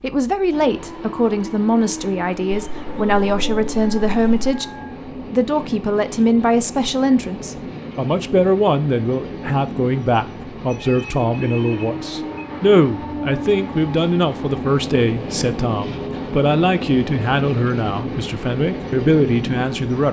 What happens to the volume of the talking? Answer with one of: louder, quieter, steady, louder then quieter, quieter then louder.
steady.